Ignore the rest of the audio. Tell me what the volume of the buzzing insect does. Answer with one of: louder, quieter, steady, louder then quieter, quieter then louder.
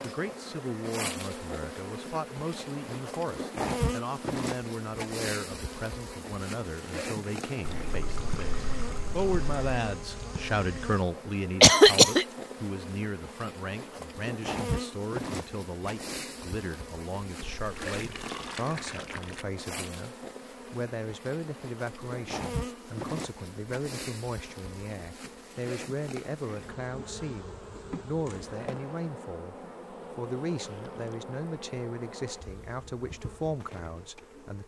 quieter.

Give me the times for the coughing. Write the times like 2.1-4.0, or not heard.
11.6-12.2.